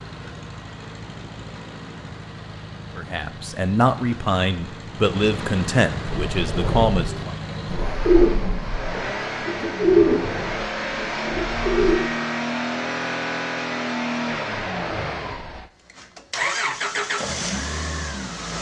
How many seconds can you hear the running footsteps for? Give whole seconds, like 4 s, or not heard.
not heard.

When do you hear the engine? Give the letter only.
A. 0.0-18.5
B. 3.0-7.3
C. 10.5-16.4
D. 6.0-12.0
A.